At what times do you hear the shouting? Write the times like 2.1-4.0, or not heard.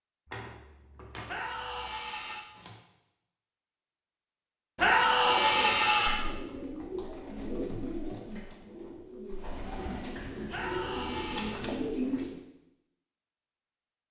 1.2-2.5, 4.8-6.2, 10.5-11.6.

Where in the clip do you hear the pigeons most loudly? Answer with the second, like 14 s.
12 s.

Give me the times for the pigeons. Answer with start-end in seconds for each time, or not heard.
5.2-12.4.